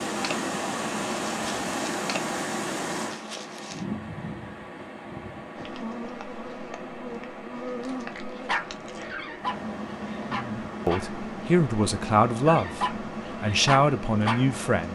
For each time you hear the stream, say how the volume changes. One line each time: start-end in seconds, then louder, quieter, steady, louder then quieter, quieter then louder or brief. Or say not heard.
0.0-14.9 quieter.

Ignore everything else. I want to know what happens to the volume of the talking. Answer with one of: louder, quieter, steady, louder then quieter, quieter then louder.
louder.